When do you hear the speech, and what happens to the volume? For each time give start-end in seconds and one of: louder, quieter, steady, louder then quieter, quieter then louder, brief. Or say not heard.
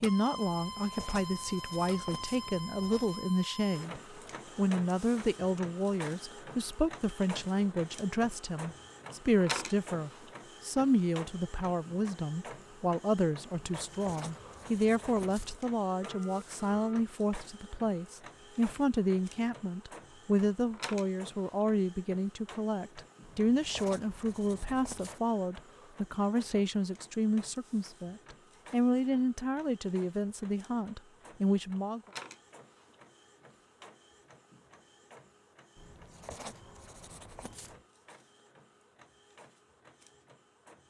0.0-32.0 steady.